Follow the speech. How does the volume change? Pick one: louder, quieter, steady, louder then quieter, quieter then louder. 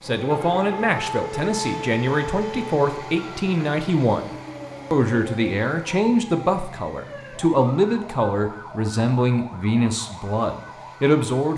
steady.